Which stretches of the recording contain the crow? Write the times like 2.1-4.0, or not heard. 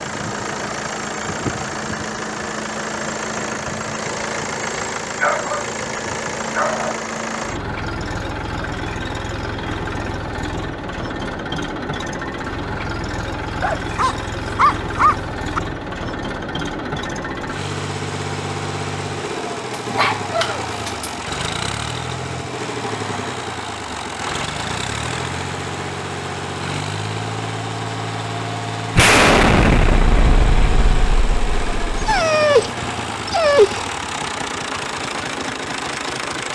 not heard.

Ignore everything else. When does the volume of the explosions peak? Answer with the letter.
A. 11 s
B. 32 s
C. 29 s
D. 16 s
C.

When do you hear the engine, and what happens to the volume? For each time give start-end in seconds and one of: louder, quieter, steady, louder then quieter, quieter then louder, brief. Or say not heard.
0.0-36.5 steady.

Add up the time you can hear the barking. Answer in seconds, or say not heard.
6 s.